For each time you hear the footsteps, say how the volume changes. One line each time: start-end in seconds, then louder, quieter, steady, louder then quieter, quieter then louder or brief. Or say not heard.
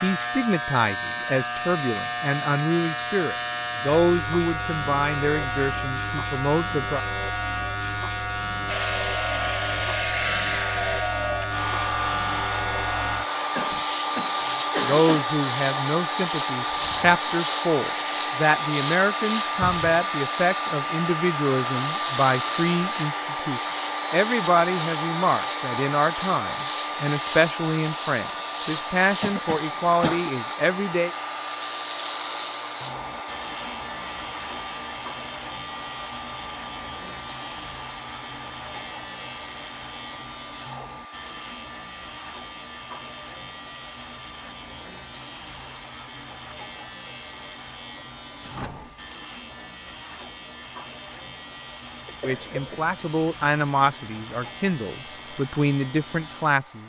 not heard.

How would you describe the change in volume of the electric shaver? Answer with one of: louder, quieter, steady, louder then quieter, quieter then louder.
quieter.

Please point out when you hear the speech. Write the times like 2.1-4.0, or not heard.
0.0-7.0, 14.8-31.1, 52.2-56.8.